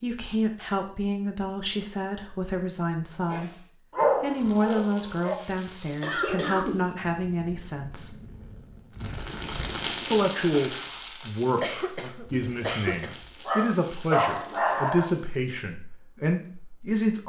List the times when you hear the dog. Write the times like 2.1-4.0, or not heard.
4.0-5.3, 13.4-15.1.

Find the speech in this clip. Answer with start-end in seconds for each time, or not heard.
0.0-8.2, 10.1-17.2.